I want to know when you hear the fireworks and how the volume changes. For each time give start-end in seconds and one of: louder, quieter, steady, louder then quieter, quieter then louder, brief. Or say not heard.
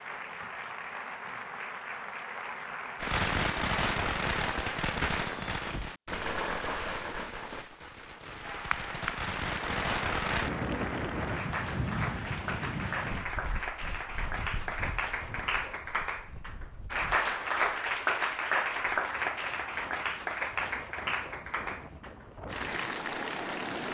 3.0-10.5 quieter then louder.